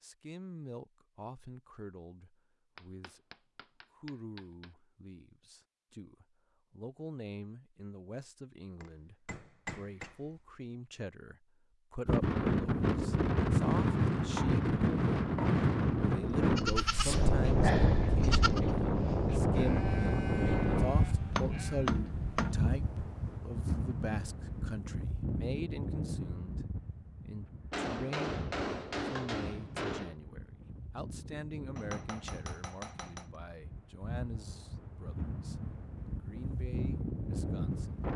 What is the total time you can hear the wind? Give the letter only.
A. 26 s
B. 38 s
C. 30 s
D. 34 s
A.